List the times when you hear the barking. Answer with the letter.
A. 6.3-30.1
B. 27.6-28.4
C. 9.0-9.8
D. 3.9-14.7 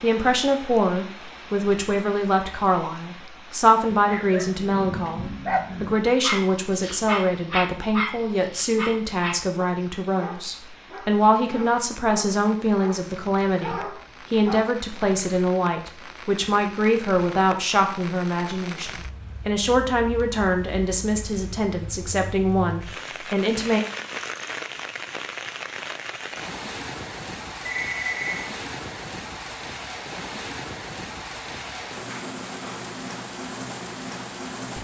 D.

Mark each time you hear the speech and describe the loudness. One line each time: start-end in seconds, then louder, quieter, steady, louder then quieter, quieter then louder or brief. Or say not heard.
0.0-23.8 steady.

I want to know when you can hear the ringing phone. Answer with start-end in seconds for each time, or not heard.
27.6-28.4.